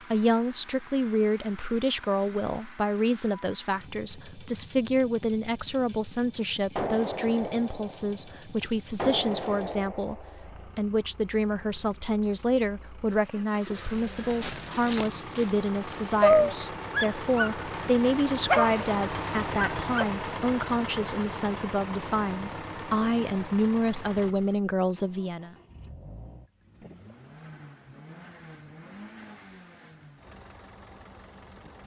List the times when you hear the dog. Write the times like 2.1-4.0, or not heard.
14.3-20.1.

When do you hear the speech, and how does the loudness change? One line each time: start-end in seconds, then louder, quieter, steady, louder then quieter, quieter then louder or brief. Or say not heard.
0.1-25.6 steady.